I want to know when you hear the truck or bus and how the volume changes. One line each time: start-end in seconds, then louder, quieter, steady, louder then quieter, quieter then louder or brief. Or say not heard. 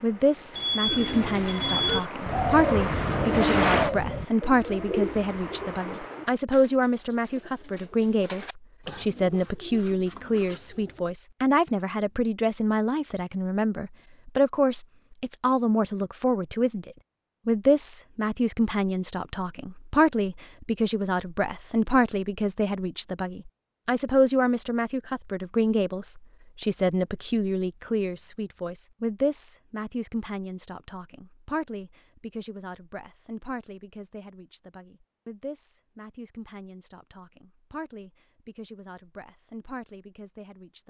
0.0-6.3 louder then quieter.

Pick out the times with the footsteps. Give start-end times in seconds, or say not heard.
not heard.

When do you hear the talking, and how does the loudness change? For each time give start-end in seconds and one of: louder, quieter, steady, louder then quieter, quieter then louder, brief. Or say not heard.
0.0-40.8 quieter.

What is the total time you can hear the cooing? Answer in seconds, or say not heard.
10 s.